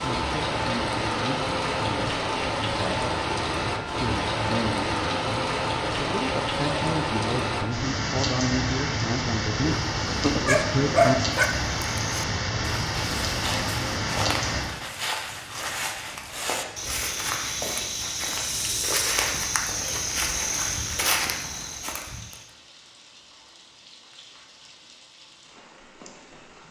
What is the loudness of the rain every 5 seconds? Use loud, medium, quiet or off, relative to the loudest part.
loud, loud, loud, quiet, quiet, quiet.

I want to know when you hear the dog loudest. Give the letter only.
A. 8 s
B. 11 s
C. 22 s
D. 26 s
B.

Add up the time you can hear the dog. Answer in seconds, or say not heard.
2 s.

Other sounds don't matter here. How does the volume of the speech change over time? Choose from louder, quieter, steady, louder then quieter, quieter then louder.
louder.